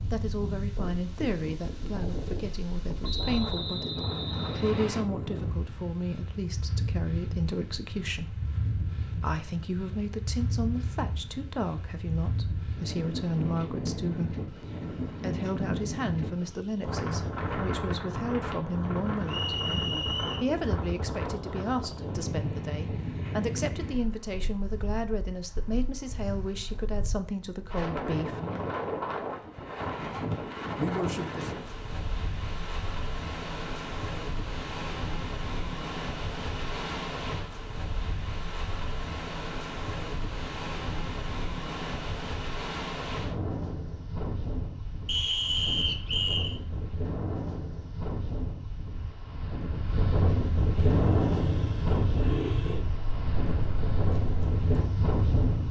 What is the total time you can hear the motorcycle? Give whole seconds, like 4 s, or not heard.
5 s.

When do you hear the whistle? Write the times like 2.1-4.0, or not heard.
3.0-5.0, 19.2-20.5, 45.0-46.5.